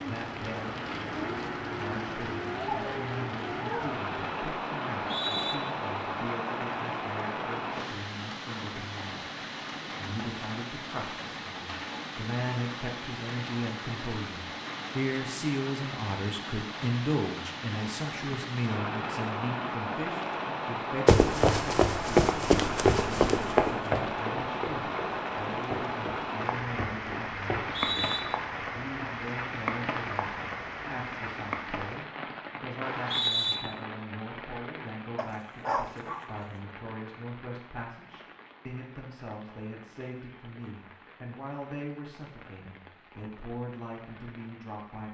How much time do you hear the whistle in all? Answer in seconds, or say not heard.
2 s.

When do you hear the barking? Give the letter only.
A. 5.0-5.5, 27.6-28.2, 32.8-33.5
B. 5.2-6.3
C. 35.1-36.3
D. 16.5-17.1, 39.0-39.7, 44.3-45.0
C.